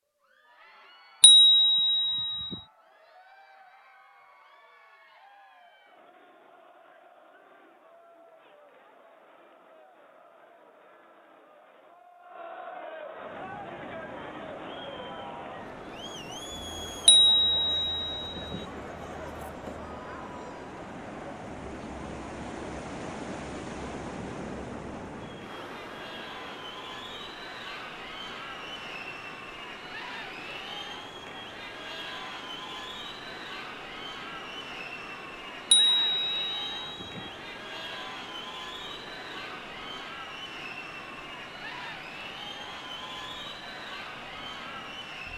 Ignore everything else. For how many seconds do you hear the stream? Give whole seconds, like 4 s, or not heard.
32 s.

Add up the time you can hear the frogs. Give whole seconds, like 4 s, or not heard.
not heard.